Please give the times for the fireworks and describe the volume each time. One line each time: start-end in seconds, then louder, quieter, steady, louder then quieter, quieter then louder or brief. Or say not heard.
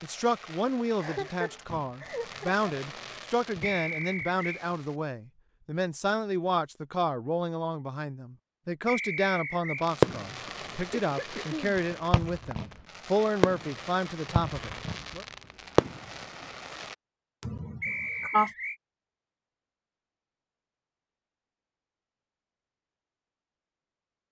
0.0-5.0 louder then quieter
9.8-16.9 louder.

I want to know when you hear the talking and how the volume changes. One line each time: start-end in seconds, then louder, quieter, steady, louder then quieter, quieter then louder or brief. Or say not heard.
0.0-15.2 steady.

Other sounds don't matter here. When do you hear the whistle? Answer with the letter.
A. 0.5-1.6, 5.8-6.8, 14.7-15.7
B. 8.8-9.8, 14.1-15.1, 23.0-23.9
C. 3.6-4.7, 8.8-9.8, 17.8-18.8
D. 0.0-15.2
C.